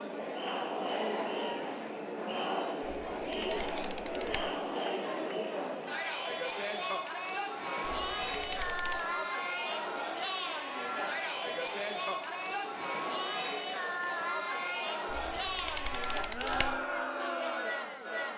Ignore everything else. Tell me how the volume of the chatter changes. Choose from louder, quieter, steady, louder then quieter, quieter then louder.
steady.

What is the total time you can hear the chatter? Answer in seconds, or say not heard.
18 s.